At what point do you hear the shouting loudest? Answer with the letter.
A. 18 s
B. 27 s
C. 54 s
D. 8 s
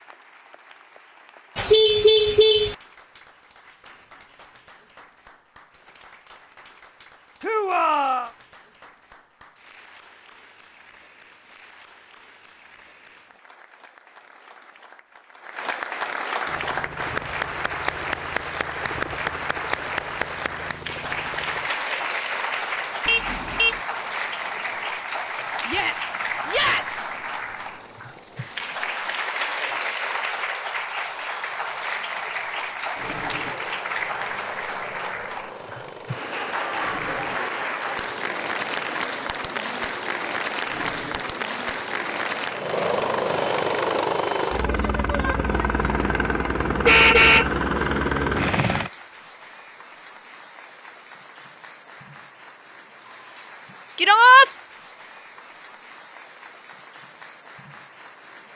C.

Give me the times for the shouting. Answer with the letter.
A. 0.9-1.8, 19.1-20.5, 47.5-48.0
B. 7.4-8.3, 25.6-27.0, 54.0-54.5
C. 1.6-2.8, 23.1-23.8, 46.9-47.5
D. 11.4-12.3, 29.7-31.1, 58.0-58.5
B.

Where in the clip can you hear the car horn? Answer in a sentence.
You can hear the car horn from 1.6 to 2.8 s, from 23.1 to 23.8 s and from 46.9 to 47.5 s.